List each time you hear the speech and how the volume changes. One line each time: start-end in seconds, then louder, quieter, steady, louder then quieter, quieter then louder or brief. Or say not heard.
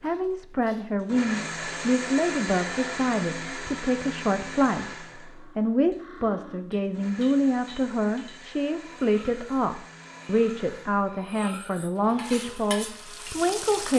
0.0-13.9 steady.